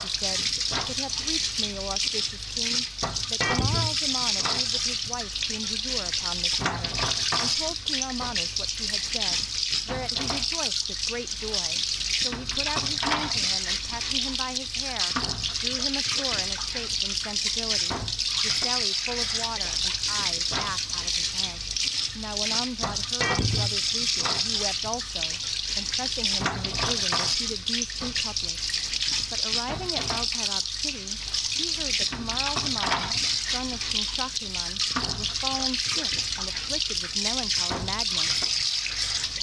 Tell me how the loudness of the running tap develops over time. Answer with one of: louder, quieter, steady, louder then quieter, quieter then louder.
steady.